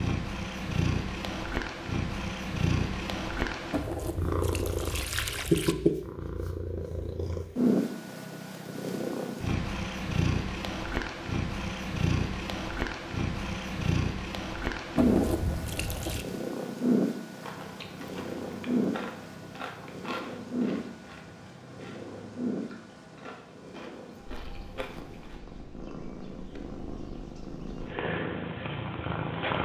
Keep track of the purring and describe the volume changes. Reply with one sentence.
The loudness of the purring goes down.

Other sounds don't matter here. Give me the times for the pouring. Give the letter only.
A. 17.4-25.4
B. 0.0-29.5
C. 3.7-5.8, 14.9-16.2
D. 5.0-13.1
C.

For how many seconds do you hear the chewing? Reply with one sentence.
The chewing can be heard for 8 seconds in total.